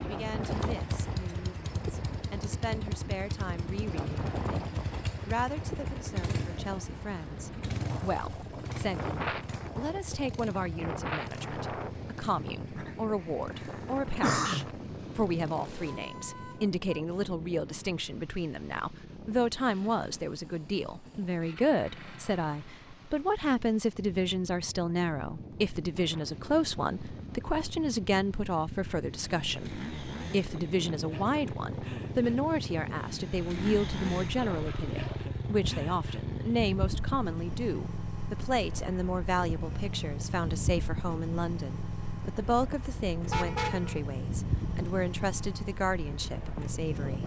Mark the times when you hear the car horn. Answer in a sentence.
The car horn can be heard from 15.8 to 16.8 s and from 43.3 to 44.0 s.